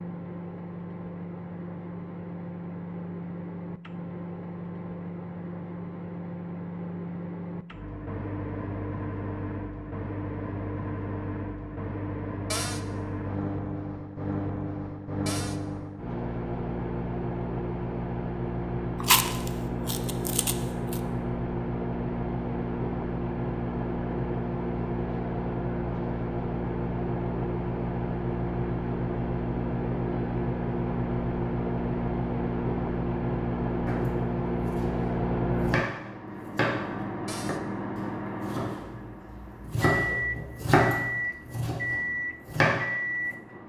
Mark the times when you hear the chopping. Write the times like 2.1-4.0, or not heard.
33.9-43.4.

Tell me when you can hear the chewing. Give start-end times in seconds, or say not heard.
19.0-21.0.